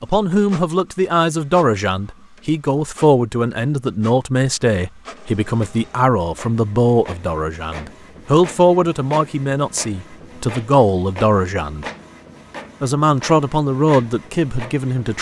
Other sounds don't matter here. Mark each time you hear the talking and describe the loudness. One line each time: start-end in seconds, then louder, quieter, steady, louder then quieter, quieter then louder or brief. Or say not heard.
0.0-11.8 steady
12.8-15.1 brief.